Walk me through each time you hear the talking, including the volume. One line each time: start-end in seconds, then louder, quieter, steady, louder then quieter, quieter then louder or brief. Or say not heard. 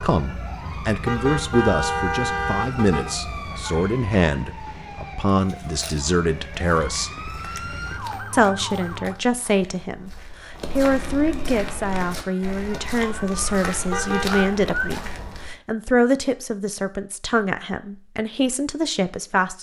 0.0-7.1 steady
8.3-19.5 steady.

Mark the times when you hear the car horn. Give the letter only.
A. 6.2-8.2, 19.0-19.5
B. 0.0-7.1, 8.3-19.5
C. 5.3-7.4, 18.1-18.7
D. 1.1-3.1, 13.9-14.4
D.